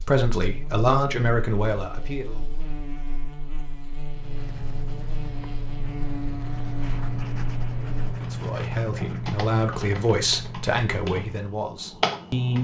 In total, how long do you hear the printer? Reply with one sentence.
The printer can't be heard in this clip.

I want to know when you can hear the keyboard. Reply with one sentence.
You can hear the keyboard from 8.2 to 12.5 s.